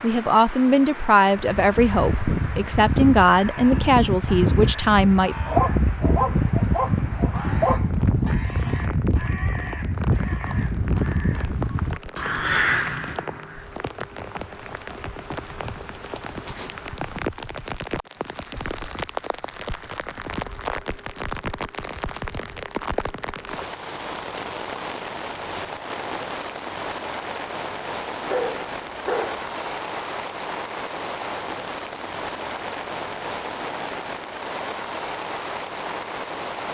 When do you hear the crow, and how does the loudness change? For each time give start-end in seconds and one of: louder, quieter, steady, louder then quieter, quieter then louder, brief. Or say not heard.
1.4-13.7 steady.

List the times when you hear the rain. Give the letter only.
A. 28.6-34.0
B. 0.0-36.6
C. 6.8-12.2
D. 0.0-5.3
B.